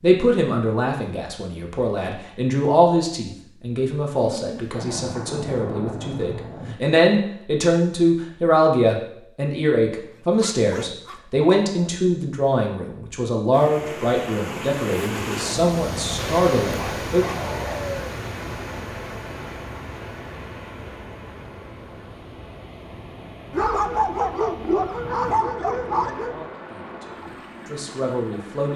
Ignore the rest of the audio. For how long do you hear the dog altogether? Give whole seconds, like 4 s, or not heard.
6 s.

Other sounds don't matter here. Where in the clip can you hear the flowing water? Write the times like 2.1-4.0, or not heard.
13.5-28.7.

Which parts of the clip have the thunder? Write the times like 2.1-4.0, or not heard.
4.7-6.8, 24.9-26.5.